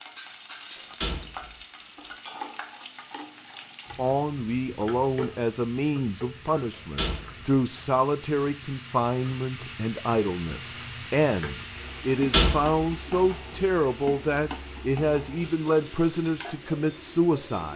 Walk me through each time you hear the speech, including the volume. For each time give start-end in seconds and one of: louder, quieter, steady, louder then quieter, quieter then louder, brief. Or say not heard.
4.0-17.7 steady.